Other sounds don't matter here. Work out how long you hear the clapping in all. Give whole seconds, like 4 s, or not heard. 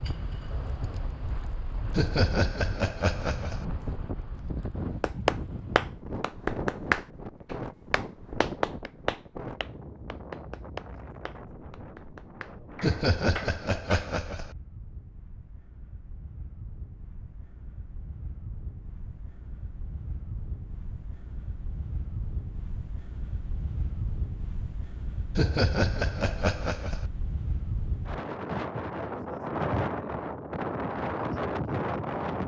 9 s.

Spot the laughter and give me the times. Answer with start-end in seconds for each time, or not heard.
1.9-3.6, 12.8-14.6, 25.4-27.1.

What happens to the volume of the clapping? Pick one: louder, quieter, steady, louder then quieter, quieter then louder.
quieter.